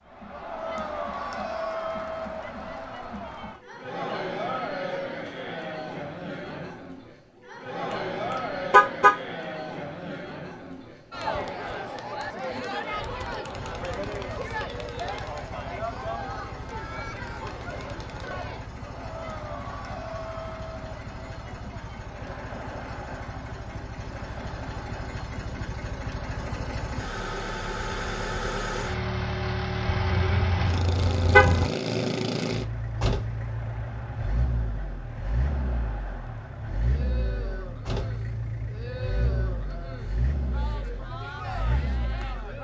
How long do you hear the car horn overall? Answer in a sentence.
The car horn can be heard for 2 seconds in total.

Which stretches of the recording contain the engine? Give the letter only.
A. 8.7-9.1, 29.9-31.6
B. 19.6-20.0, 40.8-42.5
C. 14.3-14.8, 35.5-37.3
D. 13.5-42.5
D.